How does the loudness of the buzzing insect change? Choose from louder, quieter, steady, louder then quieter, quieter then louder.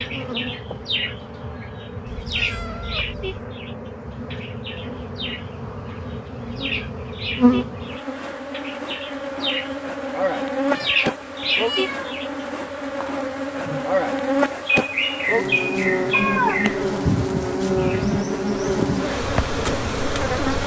louder.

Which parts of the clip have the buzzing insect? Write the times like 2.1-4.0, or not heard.
0.0-20.6.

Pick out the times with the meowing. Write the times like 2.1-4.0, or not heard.
2.0-3.5, 10.8-12.2, 16.1-16.8.